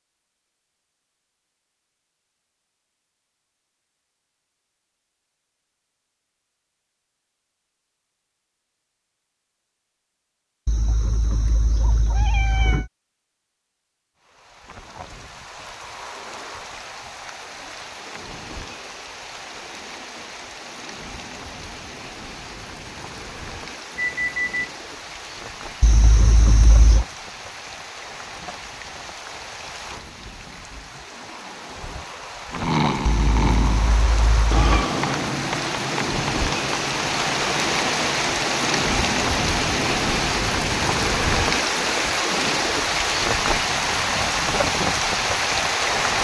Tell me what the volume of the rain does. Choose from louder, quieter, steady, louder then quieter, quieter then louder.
louder.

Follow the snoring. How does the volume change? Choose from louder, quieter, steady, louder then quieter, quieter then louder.
quieter.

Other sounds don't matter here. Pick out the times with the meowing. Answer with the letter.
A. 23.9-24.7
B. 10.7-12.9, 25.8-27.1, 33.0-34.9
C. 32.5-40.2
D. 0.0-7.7
B.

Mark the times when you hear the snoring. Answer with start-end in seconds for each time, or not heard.
32.5-40.2.